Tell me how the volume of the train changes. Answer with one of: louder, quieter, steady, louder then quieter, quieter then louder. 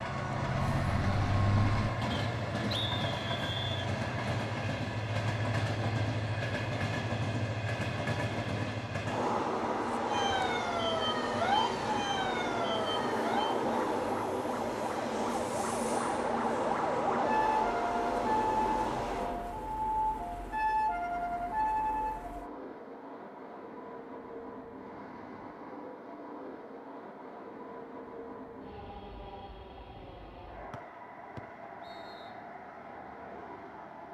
quieter.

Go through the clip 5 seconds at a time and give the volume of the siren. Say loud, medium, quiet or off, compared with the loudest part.
loud, off, loud, loud, loud, off, off.